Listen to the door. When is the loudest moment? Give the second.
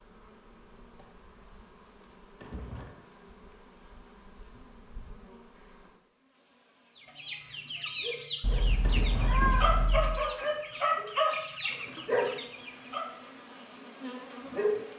9 s.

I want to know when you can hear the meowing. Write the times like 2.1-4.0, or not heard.
8.4-10.2.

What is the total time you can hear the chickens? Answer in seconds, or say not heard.
6 s.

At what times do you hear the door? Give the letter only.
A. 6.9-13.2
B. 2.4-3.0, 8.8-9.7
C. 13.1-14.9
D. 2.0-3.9
B.